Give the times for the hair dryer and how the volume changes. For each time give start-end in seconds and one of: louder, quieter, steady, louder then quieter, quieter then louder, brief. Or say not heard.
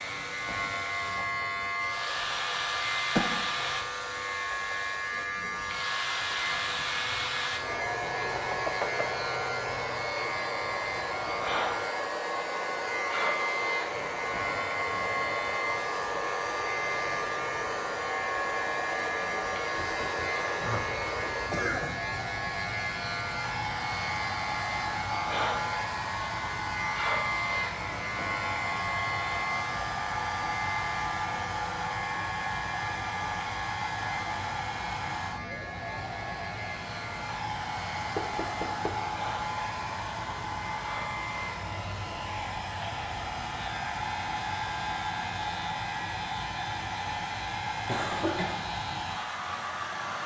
0.0-50.2 steady.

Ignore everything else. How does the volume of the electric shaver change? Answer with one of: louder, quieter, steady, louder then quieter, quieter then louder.
quieter.